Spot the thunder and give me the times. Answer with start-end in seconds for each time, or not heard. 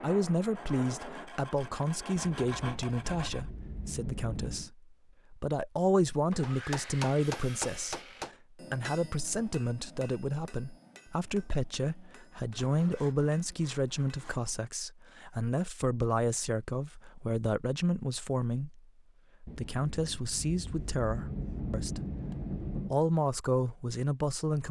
2.1-4.7, 19.4-22.9.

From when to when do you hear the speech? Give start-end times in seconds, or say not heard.
0.0-22.1, 22.9-24.6.